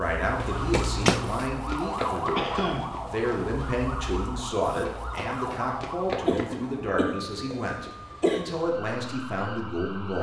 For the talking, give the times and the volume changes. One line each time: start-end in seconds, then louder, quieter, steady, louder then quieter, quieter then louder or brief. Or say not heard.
0.0-10.1 steady.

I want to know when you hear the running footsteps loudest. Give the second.
1 s.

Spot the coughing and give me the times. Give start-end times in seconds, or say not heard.
2.4-3.0, 6.2-8.4.